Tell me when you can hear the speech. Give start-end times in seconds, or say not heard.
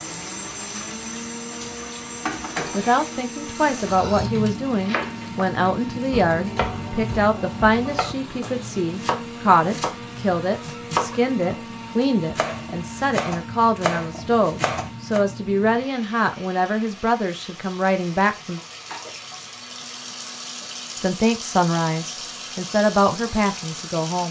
2.7-18.6, 20.9-24.2.